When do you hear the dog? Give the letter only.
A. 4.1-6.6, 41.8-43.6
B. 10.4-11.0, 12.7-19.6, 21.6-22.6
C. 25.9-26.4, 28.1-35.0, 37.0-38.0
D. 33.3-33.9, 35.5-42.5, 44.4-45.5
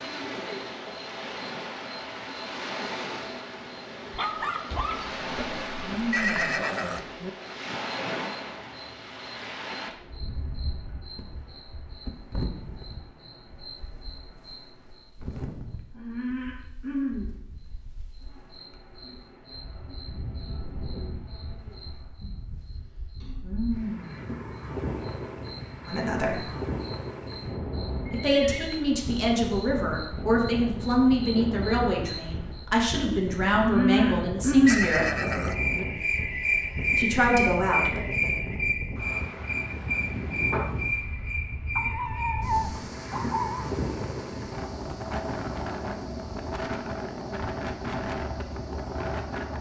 A.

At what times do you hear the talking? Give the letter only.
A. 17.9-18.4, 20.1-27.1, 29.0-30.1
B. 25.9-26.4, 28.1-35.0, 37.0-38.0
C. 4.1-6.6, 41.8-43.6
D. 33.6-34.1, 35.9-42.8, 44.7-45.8
B.